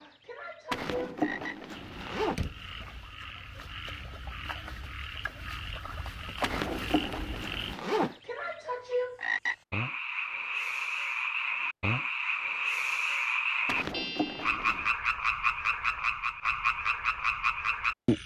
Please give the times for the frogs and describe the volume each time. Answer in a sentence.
The frogs can be heard from 0.0 to 18.2 s, getting louder.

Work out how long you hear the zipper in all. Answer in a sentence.
The zipper can be heard for 5 seconds in total.